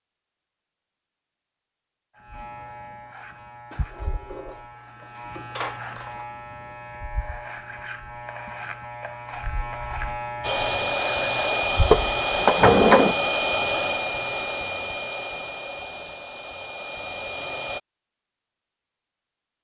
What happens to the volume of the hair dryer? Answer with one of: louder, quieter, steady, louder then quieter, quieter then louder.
quieter.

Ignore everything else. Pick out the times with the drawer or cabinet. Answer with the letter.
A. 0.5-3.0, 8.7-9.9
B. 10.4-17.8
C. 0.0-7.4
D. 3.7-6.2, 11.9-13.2
D.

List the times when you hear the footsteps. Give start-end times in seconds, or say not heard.
not heard.